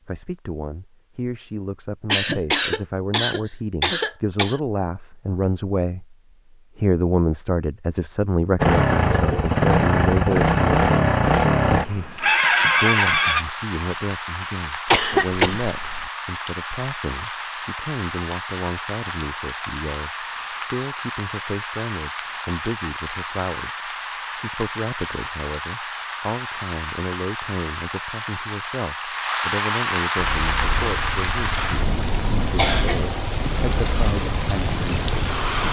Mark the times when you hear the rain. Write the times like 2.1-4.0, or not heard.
13.3-35.6.